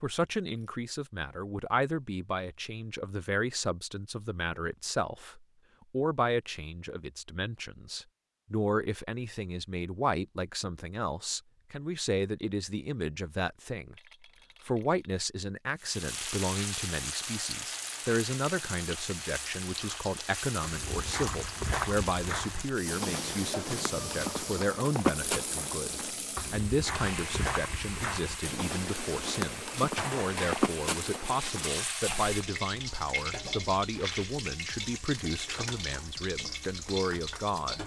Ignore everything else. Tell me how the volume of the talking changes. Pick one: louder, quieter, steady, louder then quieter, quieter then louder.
steady.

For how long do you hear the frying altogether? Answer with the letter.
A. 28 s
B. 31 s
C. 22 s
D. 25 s
C.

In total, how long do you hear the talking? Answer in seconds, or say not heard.
37 s.